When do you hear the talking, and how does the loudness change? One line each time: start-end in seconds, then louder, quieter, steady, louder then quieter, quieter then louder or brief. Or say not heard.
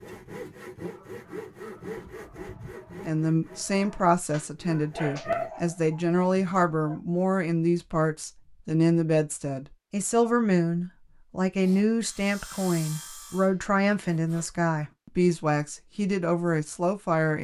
3.0-17.3 steady.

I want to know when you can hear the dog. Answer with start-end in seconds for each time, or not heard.
0.8-7.0.